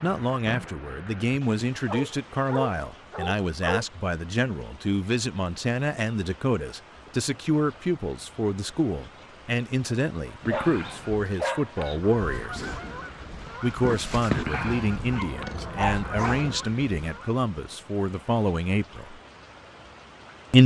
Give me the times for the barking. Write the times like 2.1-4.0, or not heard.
1.9-3.9, 10.2-12.0, 14.5-16.6.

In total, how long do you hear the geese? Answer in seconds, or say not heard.
7 s.